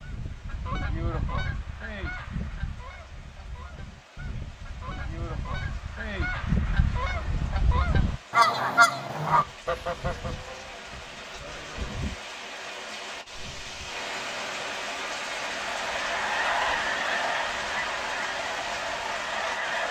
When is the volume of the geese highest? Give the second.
9 s.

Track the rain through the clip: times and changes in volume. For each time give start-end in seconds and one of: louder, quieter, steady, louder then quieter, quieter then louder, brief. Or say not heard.
0.0-19.8 louder.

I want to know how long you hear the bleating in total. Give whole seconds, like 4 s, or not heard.
3 s.